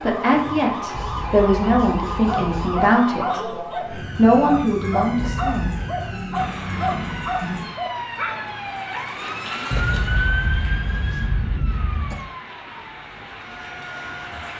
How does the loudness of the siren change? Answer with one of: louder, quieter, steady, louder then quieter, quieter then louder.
quieter.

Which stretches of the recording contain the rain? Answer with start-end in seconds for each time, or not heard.
6.3-14.5.